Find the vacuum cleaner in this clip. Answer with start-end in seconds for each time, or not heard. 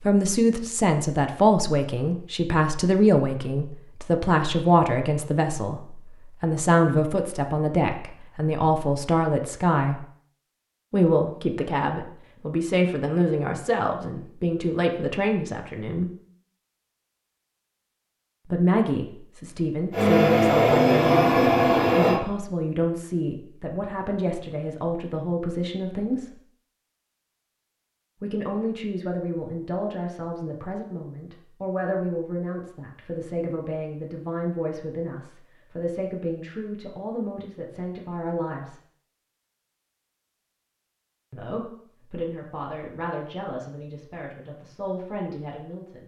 19.9-22.2.